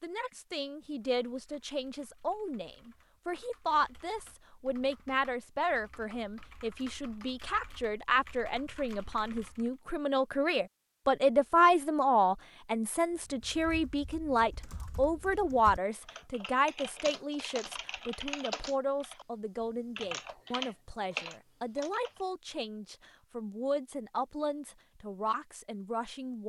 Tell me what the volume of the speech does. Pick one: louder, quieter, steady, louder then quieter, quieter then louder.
louder then quieter.